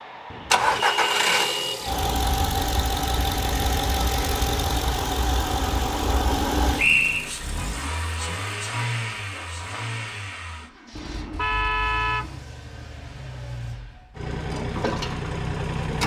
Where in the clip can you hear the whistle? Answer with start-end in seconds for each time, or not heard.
6.8-7.3.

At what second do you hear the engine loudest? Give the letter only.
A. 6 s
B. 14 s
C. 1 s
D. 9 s
C.